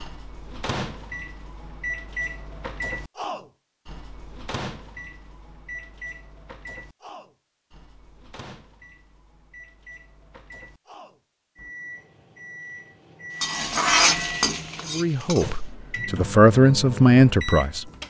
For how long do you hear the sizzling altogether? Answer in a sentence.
You can hear the sizzling for 2 seconds altogether.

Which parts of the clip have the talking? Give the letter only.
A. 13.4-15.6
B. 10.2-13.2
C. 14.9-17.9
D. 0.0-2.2
C.